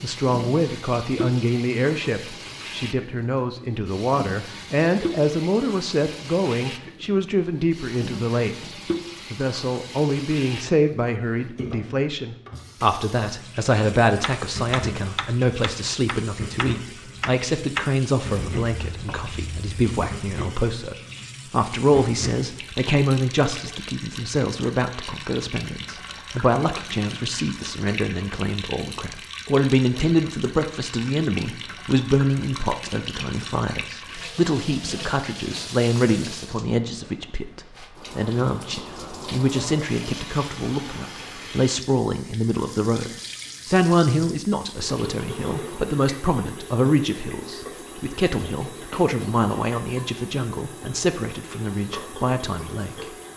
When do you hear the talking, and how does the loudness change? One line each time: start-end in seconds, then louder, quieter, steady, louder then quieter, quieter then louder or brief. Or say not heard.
0.0-53.1 steady.